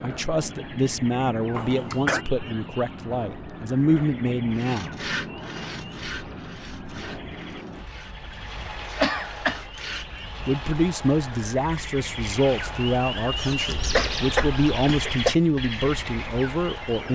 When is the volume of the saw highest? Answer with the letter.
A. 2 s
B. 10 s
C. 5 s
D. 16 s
C.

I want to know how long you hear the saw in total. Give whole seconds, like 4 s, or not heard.
6 s.